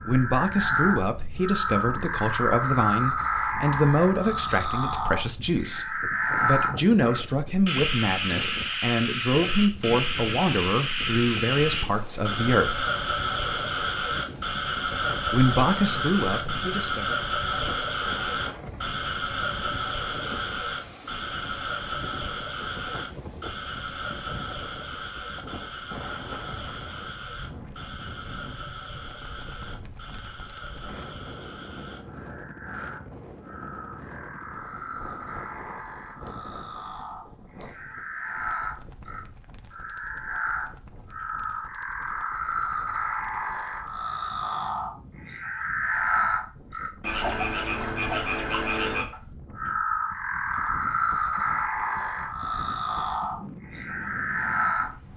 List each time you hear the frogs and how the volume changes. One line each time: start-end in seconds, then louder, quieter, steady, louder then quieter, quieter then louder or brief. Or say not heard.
0.0-55.1 quieter then louder.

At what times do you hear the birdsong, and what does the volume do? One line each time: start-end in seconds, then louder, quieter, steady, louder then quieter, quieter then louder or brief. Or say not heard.
not heard.